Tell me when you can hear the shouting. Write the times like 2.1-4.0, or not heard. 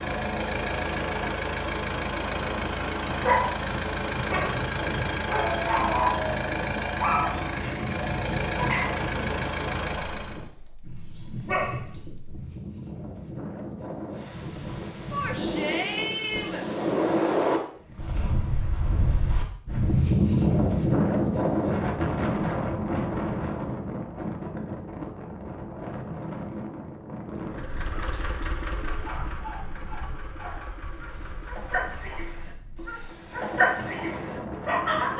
15.1-16.6.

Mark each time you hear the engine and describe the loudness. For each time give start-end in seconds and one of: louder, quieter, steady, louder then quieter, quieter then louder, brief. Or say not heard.
0.0-10.4 steady
27.4-32.5 quieter.